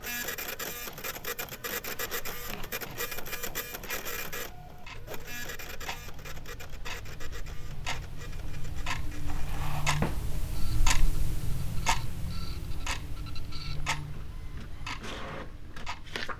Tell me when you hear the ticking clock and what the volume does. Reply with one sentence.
The ticking clock can be heard from 0.0 to 16.3 s, getting louder then quieter.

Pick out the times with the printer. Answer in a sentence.
The printer can be heard from 0.0 to 16.3 s.